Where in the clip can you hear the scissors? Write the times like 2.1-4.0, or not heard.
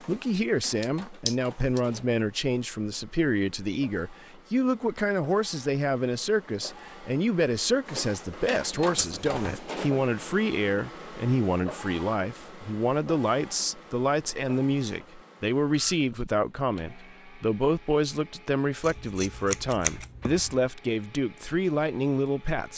0.8-1.8, 8.9-9.6, 18.8-20.6.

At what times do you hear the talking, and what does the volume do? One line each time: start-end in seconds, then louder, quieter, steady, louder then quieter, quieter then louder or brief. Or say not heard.
0.1-22.7 steady.